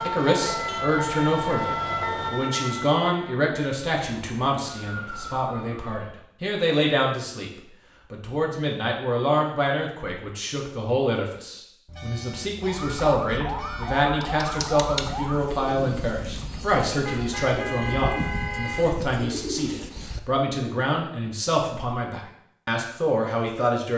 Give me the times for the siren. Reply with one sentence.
You can hear the siren from 0.0 to 6.2 s and from 12.6 to 15.6 s.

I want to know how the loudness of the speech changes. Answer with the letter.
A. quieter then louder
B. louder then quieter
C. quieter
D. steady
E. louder
D.